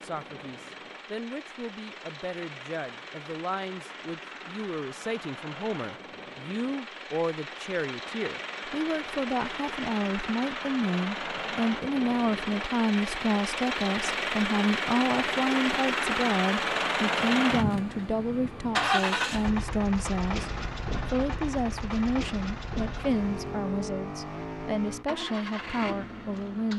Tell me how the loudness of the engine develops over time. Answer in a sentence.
The loudness of the engine goes up, then down.